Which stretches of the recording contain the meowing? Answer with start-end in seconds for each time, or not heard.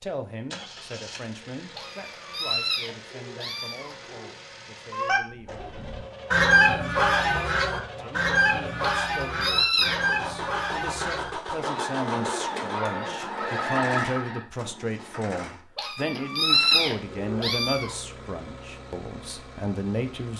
1.8-4.3, 8.8-10.0, 15.8-17.9.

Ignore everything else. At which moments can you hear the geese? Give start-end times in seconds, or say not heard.
4.9-14.4.